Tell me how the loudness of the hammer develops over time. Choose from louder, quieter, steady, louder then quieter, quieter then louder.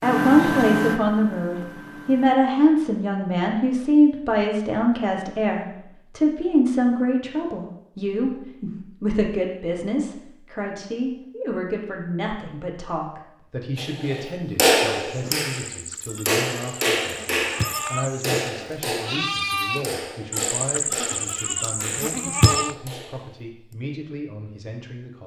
quieter.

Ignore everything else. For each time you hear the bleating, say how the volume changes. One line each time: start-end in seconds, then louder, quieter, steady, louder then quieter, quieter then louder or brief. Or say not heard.
15.1-22.8 louder.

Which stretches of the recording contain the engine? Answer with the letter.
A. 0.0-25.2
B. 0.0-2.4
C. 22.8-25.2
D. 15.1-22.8
B.